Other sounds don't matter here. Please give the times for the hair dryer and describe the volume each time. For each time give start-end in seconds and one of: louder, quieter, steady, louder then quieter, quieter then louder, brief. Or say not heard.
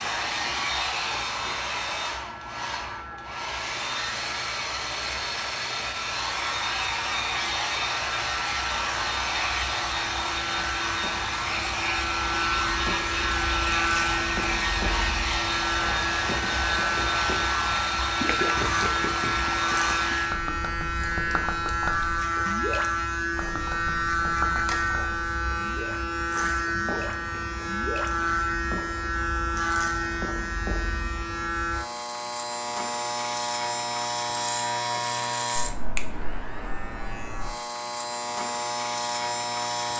0.0-20.4 steady.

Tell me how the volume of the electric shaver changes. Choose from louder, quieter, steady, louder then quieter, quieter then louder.
louder.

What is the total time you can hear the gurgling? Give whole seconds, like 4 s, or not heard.
9 s.